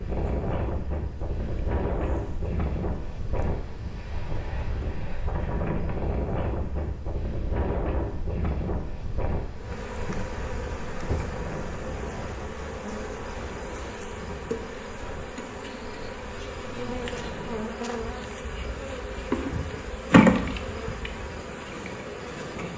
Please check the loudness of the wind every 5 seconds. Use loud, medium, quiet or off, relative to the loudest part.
loud, loud, medium, quiet, medium.